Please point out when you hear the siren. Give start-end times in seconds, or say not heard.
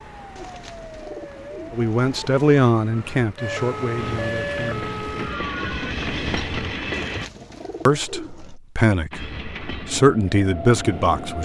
0.0-5.9.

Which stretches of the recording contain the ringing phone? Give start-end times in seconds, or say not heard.
not heard.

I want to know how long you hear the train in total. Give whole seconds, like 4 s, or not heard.
6 s.